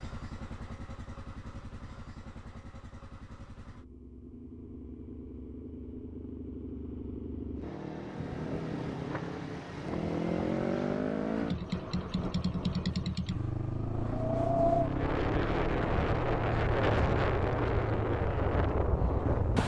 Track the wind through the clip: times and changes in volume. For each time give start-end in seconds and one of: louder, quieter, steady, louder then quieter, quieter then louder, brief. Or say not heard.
8.1-19.6 louder.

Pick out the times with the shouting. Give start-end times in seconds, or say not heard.
not heard.